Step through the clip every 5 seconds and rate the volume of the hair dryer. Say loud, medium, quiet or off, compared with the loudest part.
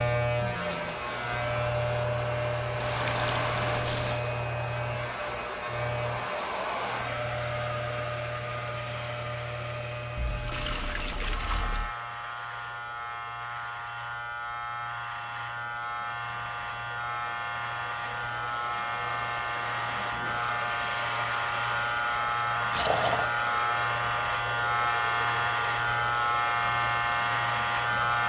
loud, loud, quiet, medium, loud, loud.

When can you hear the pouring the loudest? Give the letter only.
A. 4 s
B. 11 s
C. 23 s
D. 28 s
C.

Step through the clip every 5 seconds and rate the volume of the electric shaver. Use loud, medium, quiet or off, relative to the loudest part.
loud, medium, medium, medium, loud, loud.